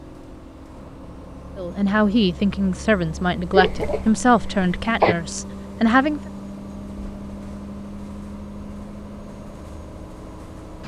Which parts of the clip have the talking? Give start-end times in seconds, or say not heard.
1.6-6.2.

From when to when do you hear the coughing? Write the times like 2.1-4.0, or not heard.
3.5-5.2.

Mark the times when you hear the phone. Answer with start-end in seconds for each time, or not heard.
not heard.